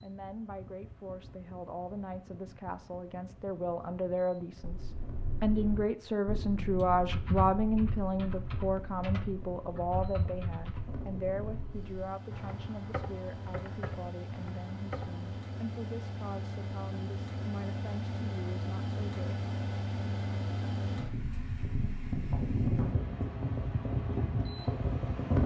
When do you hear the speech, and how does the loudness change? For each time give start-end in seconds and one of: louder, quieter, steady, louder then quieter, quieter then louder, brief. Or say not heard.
0.0-19.4 louder then quieter.